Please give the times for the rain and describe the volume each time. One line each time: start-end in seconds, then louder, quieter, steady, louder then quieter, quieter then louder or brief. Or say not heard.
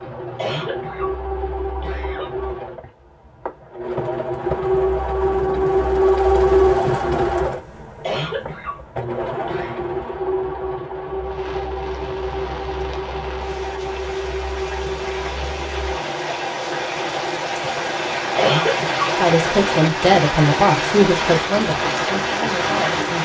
11.2-23.1 louder.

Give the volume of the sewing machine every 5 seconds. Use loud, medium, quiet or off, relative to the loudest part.
medium, loud, medium, medium, medium.